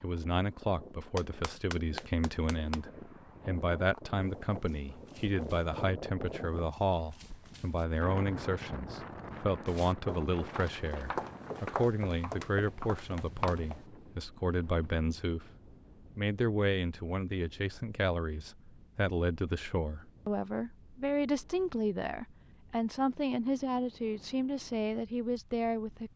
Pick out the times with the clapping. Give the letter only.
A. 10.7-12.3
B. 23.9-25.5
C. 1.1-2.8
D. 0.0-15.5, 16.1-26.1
C.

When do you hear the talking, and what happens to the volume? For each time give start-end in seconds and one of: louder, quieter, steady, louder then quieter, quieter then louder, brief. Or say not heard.
0.0-15.5 steady
16.1-26.1 steady.